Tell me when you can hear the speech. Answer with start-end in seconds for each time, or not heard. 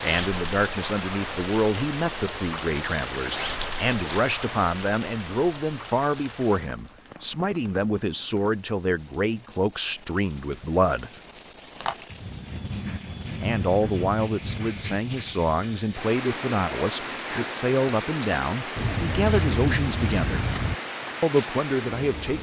0.0-11.1, 13.4-20.4, 21.2-22.3.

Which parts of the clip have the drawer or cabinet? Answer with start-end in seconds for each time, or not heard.
not heard.